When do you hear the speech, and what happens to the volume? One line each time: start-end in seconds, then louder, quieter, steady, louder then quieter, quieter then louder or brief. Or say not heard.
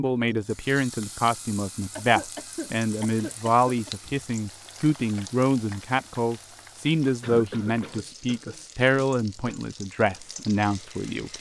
0.0-11.3 steady.